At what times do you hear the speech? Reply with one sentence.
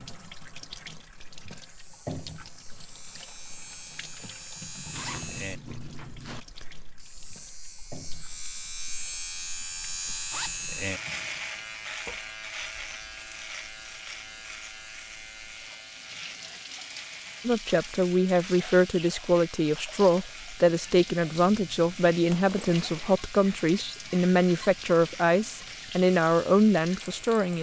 You can hear the speech from 17.4 to 27.5 s.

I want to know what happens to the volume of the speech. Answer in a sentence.
The volume of the speech stays about the same.